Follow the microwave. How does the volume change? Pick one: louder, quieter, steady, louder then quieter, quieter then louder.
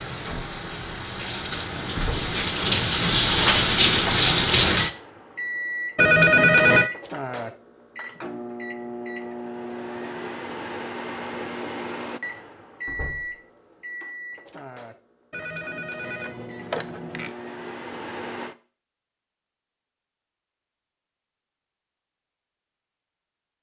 quieter.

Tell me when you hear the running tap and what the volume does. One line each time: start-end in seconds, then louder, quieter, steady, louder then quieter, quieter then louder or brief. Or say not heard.
0.0-4.9 louder.